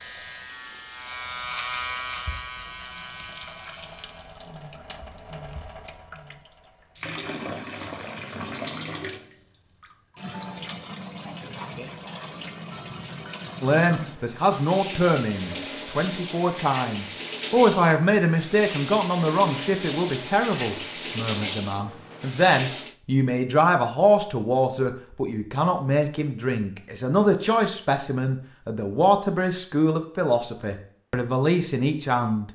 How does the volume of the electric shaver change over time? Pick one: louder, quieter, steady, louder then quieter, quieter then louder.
louder then quieter.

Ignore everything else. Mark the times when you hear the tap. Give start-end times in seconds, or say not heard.
0.0-22.9.